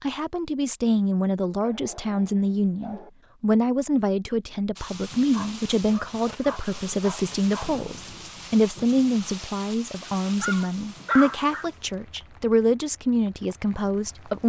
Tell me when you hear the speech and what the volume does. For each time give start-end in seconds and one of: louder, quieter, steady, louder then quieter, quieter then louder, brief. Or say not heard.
0.0-14.4 steady.